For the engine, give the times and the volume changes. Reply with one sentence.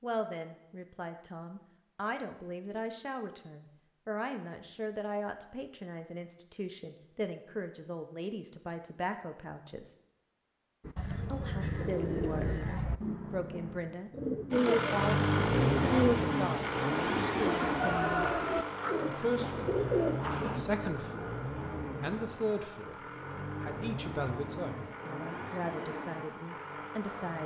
You can hear the engine from 14.5 to 27.4 s, getting quieter.